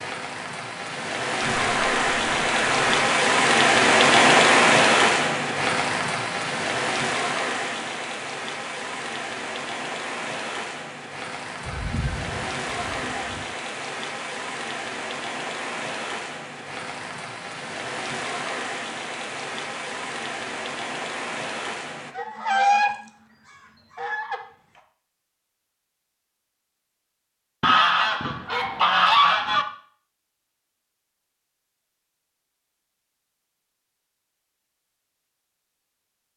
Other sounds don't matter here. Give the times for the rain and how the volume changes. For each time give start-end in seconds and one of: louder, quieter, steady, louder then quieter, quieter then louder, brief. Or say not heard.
0.0-22.1 quieter.